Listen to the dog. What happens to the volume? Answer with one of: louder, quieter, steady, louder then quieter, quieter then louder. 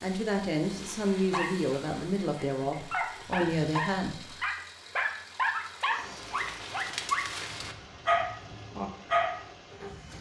louder.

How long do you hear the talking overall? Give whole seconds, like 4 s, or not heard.
4 s.